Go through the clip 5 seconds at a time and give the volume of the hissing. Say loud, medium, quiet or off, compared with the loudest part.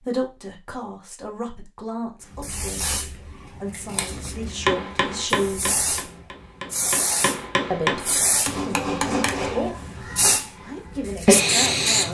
quiet, medium, loud.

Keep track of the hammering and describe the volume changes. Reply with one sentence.
The loudness of the hammering goes down, then up.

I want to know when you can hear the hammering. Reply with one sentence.
The hammering can be heard from 4.7 to 9.7 s.